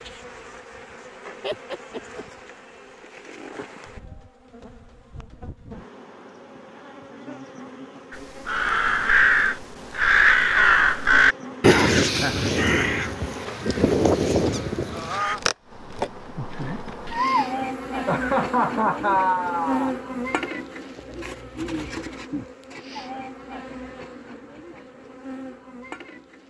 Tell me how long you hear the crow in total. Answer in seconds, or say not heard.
7 s.